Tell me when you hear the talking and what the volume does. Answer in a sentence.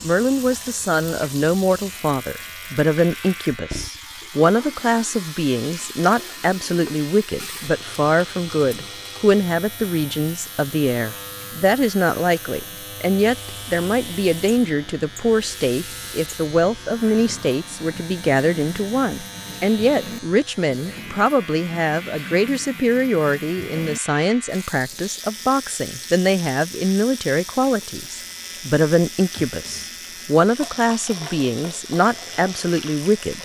The talking can be heard from 0.0 to 33.4 s, at a steady volume.